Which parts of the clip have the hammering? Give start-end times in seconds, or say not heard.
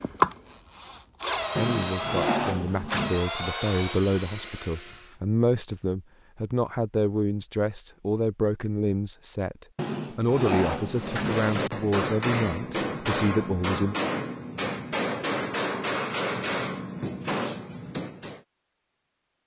10.9-18.4.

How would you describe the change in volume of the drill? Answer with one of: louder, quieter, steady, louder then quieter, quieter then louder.
louder then quieter.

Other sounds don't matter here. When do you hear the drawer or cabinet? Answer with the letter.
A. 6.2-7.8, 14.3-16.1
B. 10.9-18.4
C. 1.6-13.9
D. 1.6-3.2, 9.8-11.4
D.